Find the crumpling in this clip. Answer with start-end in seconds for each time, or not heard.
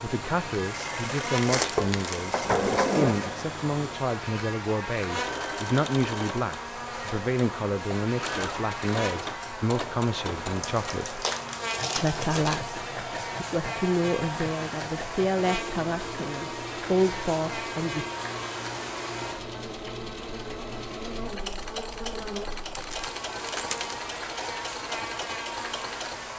1.3-2.4, 10.6-12.7, 22.8-23.9.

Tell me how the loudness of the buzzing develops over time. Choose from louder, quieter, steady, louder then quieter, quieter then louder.
steady.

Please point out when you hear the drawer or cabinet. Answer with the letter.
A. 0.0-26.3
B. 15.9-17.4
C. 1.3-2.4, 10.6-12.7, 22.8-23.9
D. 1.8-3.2
D.